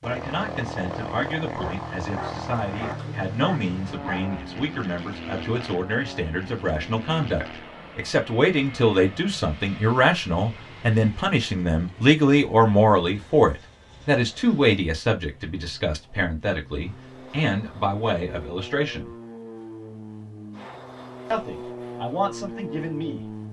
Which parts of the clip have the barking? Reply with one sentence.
The barking can be heard from 1.5 to 4.3 s.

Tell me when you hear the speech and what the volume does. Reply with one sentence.
You can hear the speech from 0.0 to 19.1 s, getting louder then quieter; and briefly from 21.3 to 23.2 s.